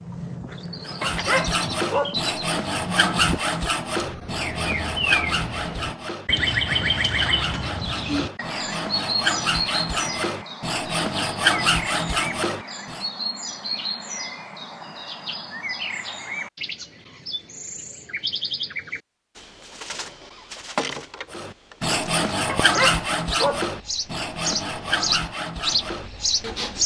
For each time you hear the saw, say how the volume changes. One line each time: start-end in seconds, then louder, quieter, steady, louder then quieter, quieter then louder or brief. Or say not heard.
0.8-13.1 quieter then louder
21.3-26.8 quieter.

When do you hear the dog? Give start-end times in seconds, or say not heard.
1.0-2.1, 22.4-23.6.